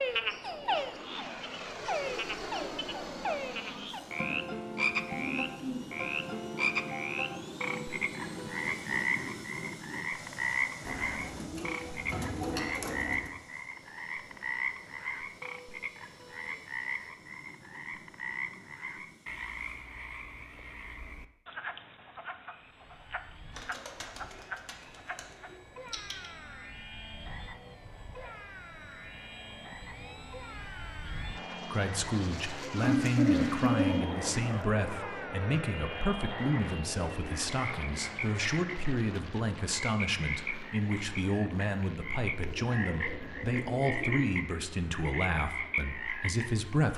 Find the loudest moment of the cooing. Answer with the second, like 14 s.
33 s.